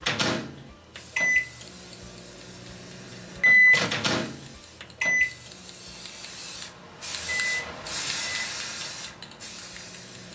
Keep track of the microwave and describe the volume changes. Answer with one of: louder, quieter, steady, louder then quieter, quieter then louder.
louder then quieter.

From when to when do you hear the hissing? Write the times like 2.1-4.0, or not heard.
0.0-10.3.